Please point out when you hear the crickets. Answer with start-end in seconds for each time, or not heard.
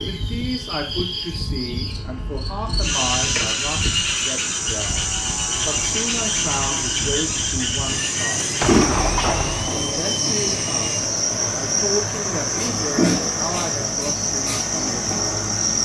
0.0-15.8.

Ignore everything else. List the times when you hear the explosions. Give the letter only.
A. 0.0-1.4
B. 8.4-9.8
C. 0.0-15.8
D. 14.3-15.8
B.